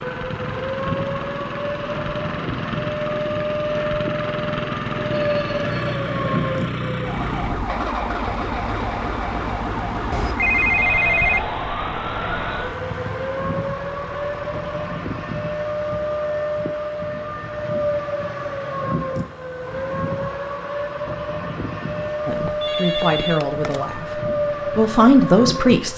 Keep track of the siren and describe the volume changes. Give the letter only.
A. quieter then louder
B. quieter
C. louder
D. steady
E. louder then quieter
D.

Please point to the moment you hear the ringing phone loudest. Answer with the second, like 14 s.
11 s.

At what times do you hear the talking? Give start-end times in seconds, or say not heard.
22.2-25.9.